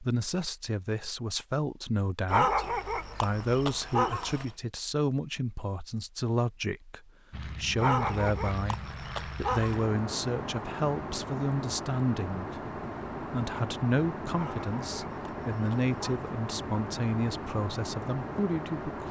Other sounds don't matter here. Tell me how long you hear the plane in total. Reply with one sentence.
You can hear the plane for 12 seconds altogether.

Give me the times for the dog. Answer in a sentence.
You can hear the dog from 2.2 to 4.5 s, from 7.8 to 9.8 s and from 14.3 to 16.2 s.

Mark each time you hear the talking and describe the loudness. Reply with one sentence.
You can hear the talking from 0.0 to 19.0 s, at a steady volume.